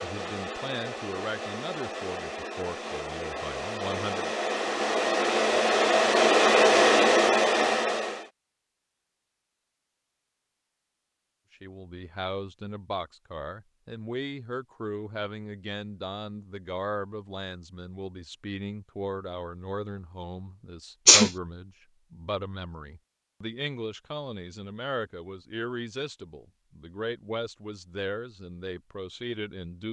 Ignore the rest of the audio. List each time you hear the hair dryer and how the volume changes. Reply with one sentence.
You can hear the hair dryer from 0.0 to 8.3 s, getting louder.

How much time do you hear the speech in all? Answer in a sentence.
You can hear the speech for 23 seconds altogether.